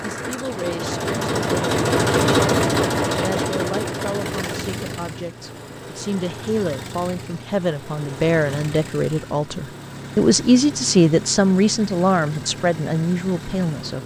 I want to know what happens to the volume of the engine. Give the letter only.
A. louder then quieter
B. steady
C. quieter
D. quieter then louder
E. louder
C.